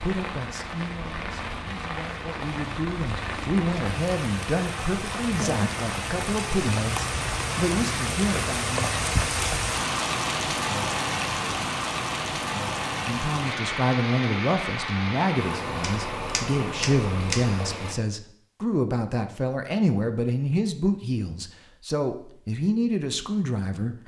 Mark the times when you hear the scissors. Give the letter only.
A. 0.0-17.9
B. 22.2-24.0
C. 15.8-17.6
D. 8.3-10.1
C.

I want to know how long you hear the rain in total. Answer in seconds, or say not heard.
18 s.